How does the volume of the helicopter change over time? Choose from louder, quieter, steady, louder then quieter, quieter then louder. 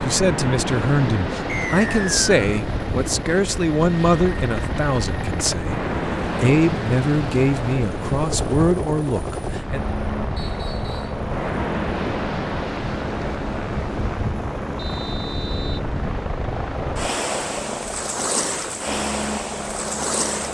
steady.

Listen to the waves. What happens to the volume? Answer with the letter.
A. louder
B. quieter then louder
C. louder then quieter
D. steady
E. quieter
D.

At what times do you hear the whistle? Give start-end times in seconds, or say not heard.
1.4-2.4, 10.3-11.2, 14.8-15.8.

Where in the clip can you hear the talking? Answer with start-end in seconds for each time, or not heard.
0.0-9.8.